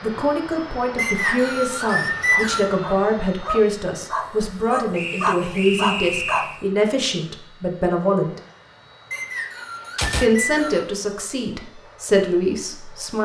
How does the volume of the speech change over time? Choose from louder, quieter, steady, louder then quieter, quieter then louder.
steady.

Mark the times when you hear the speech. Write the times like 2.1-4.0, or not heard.
0.0-8.4, 10.2-13.2.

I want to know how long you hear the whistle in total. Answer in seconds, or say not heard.
5 s.